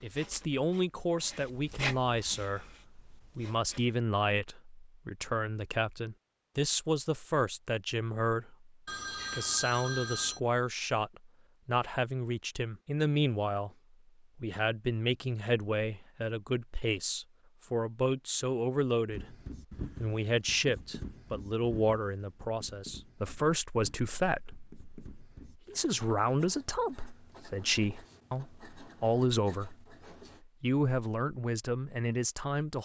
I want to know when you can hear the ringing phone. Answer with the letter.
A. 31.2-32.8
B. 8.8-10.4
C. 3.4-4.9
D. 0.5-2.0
B.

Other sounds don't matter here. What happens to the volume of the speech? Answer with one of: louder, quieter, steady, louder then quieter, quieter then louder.
steady.